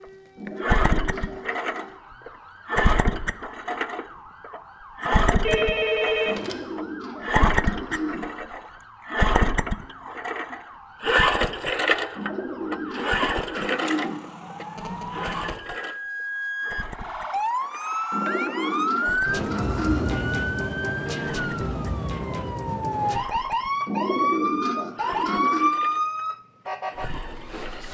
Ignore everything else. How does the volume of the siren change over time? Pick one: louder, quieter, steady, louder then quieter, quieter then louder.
louder.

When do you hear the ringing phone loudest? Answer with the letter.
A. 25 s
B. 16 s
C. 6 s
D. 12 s
C.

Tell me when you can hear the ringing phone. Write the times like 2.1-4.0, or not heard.
5.4-6.5, 14.8-15.6.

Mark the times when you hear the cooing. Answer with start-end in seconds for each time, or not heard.
0.3-1.9, 6.2-8.2, 12.2-14.2, 18.1-20.1, 23.9-25.8.